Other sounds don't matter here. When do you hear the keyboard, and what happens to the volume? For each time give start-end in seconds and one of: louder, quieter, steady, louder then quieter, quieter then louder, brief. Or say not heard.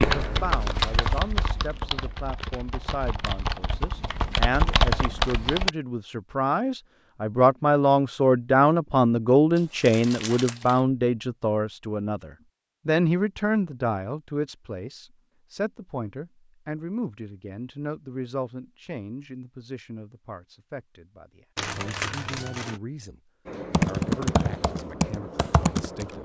0.0-5.7 quieter then louder
23.4-26.1 brief.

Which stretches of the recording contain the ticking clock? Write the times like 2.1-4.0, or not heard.
not heard.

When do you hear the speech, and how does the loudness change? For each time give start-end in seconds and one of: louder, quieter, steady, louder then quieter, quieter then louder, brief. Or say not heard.
0.0-26.1 louder then quieter.